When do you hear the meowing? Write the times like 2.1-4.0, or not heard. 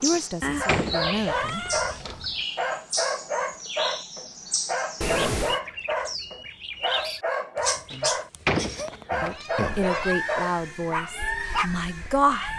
0.4-2.4, 5.0-5.6, 8.7-10.2.